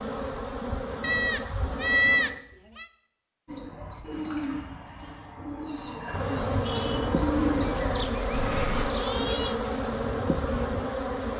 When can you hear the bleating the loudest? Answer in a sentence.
The volume of the bleating peaks at 2 seconds.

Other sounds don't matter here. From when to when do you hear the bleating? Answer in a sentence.
You can hear the bleating from 1.0 to 2.9 s and from 7.6 to 9.6 s.